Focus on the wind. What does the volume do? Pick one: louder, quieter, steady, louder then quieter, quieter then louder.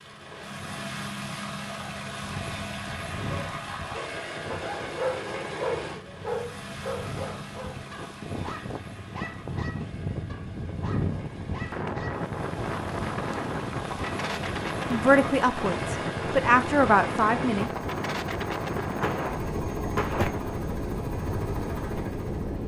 louder.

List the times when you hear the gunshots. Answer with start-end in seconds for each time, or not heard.
19.0-20.6.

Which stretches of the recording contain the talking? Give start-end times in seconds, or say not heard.
14.9-17.7.